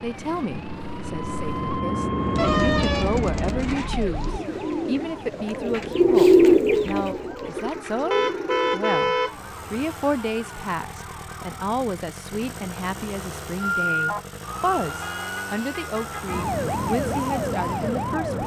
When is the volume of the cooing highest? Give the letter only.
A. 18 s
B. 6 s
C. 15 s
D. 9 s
B.